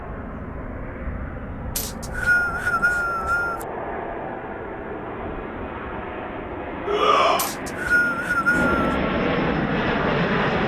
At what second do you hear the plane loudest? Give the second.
10 s.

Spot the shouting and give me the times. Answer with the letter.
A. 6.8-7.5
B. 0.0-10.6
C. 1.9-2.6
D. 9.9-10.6
A.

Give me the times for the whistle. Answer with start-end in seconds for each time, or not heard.
1.8-3.6, 7.3-9.0.